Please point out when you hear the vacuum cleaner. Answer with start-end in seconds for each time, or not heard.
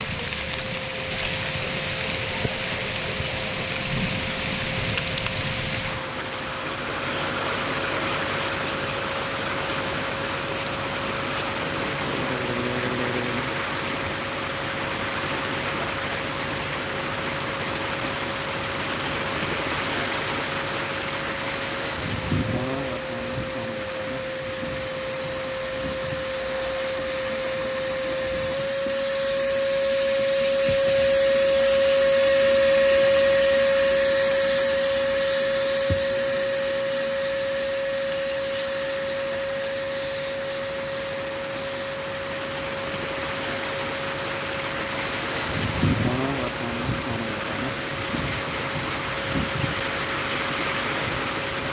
0.0-51.6.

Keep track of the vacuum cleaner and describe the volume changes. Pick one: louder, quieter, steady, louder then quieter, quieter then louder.
louder then quieter.